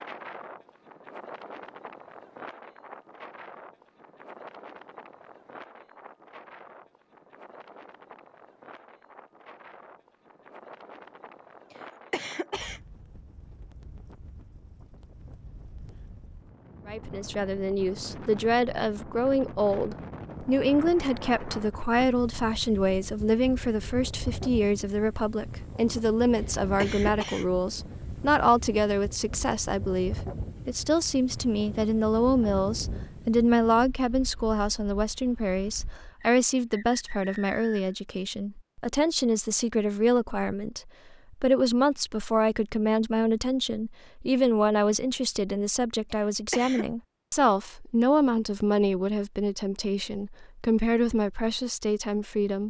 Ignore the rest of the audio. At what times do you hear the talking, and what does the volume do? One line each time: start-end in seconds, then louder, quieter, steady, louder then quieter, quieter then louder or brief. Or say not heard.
16.9-52.6 steady.